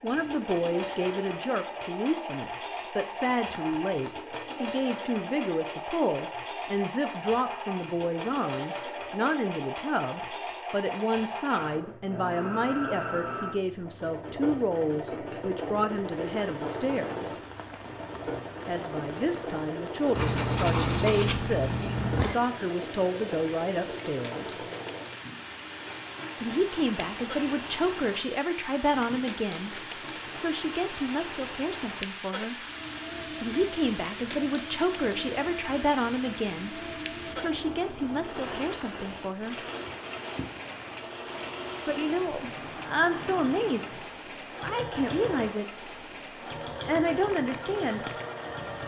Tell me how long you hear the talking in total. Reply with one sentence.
The talking can be heard for 41 seconds in total.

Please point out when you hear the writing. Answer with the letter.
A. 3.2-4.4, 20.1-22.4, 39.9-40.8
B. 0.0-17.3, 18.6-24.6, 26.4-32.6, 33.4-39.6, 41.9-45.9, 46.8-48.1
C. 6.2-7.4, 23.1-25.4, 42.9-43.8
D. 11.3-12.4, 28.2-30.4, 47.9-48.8
A.